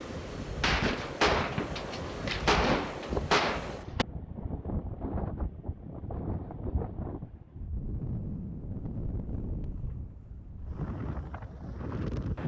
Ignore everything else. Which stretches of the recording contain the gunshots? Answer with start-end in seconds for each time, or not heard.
0.6-4.0.